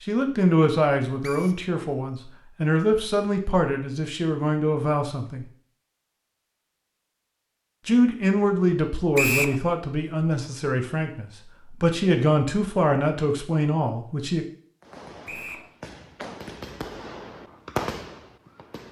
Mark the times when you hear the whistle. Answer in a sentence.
You can hear the whistle from 1.2 to 1.6 s, from 9.2 to 9.6 s and from 15.2 to 15.7 s.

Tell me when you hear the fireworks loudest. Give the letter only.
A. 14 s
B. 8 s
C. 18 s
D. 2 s
C.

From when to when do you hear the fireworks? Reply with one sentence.
The fireworks can be heard from 14.8 to 18.8 s.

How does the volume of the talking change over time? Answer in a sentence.
The volume of the talking stays about the same.